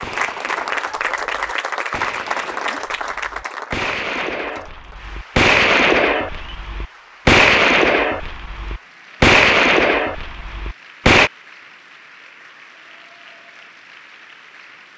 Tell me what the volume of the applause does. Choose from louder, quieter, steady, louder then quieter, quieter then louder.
quieter.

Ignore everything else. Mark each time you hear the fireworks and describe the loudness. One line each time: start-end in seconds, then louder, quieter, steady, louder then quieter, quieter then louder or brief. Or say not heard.
0.0-11.3 louder.